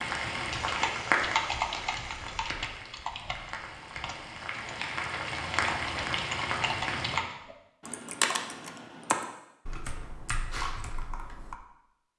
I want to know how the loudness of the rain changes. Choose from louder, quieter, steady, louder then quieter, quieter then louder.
quieter then louder.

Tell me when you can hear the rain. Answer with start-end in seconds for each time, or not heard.
0.0-7.2.